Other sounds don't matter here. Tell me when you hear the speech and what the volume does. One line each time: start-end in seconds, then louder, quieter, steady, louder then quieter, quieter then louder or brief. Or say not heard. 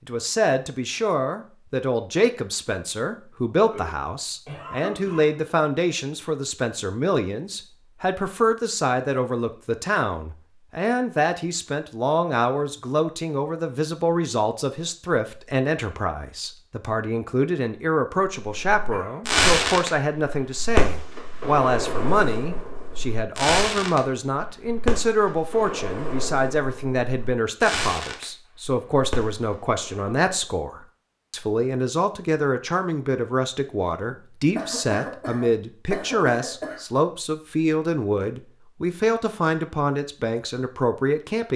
0.1-41.5 steady.